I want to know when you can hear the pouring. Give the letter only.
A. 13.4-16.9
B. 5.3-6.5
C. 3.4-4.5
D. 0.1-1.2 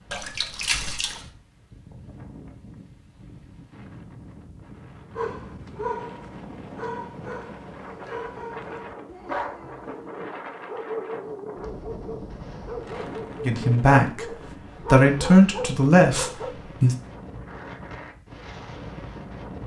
D.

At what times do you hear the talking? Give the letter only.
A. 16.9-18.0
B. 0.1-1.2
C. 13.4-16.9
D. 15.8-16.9
C.